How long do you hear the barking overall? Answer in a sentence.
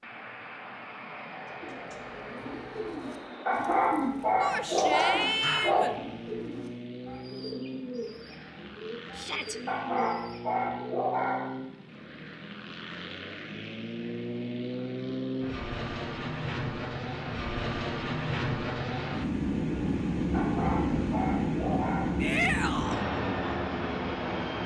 You can hear the barking for 6 seconds altogether.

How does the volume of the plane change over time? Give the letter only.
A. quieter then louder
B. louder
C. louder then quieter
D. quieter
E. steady
B.